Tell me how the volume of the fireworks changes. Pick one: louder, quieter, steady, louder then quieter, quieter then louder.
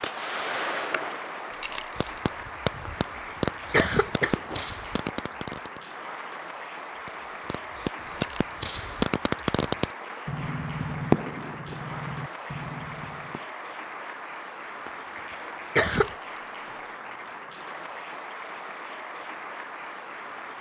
louder then quieter.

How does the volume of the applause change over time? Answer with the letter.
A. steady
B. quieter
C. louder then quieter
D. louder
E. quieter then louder
A.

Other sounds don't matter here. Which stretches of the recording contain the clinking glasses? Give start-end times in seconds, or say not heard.
1.5-2.2, 8.1-8.7, 15.8-16.5.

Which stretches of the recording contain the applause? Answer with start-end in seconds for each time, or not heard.
0.0-20.5.